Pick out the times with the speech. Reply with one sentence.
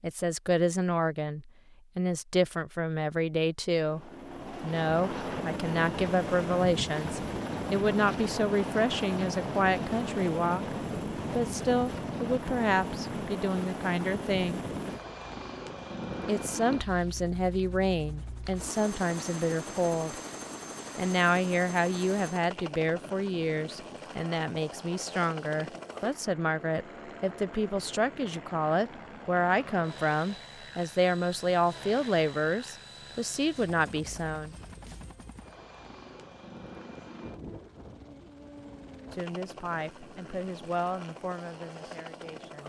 You can hear the speech from 0.0 to 14.6 s, from 16.2 to 20.1 s, from 20.9 to 34.5 s and from 39.1 to 42.6 s.